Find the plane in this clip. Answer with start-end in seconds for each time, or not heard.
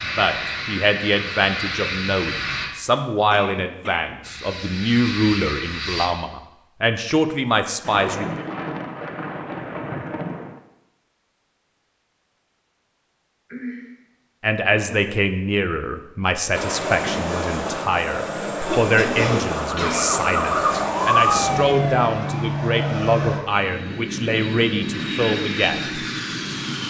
0.0-2.7, 4.2-6.1, 16.5-26.8.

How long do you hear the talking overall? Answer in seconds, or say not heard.
20 s.